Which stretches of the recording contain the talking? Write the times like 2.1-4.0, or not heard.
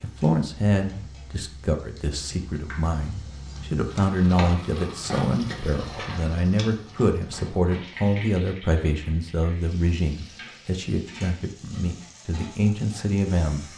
0.0-13.7.